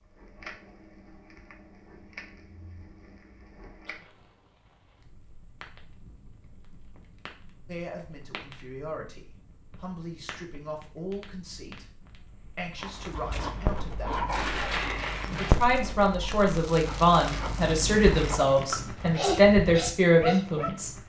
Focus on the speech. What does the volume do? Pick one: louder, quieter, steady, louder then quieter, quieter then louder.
louder.